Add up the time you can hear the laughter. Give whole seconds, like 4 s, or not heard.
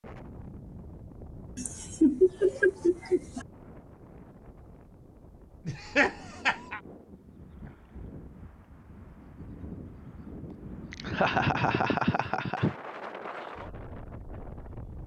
5 s.